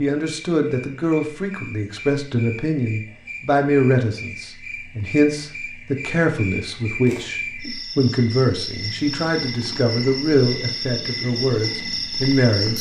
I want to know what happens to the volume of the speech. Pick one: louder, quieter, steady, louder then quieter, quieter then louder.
steady.